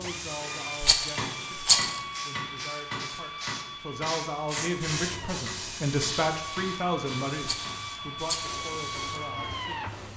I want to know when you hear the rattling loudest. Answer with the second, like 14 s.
2 s.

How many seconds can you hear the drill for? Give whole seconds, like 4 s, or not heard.
10 s.